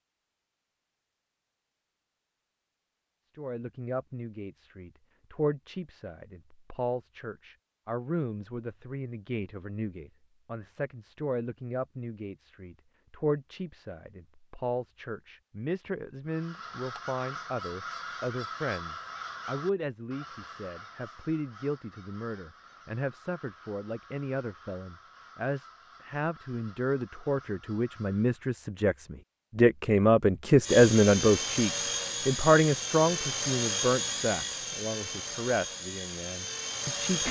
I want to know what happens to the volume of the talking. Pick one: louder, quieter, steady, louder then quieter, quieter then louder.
louder.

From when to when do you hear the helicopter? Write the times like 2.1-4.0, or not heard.
30.6-37.2.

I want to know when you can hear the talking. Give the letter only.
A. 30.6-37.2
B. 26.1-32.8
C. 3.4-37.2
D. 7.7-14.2
C.